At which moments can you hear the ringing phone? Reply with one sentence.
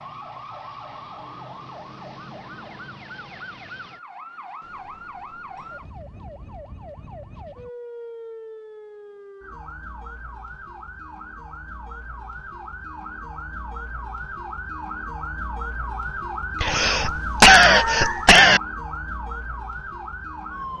The ringing phone can't be heard in this clip.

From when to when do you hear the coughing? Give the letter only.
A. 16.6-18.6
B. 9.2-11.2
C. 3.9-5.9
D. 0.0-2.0
A.